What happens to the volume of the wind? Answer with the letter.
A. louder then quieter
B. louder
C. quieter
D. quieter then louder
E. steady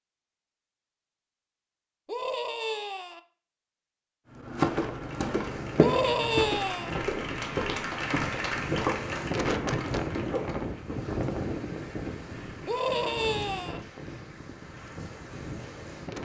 A.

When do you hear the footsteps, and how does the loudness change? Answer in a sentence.
The footsteps can be heard from 4.3 to 11.2 s, getting quieter.